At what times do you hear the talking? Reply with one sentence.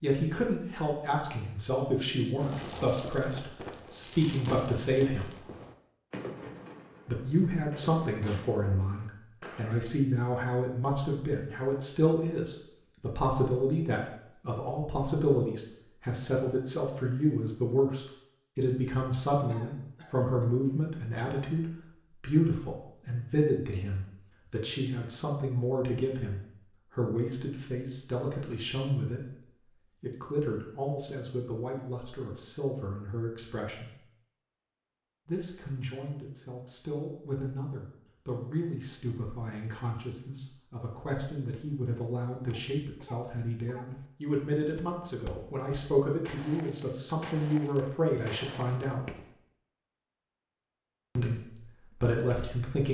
You can hear the talking from 0.0 to 5.3 s, from 7.0 to 34.0 s, from 35.2 to 49.1 s and from 51.1 to 52.8 s.